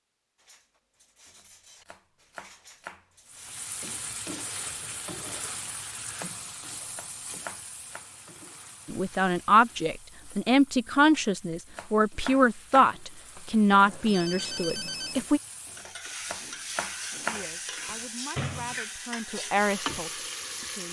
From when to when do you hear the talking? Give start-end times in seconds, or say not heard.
8.8-15.4, 17.2-20.8.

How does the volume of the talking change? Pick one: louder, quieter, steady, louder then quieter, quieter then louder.
quieter then louder.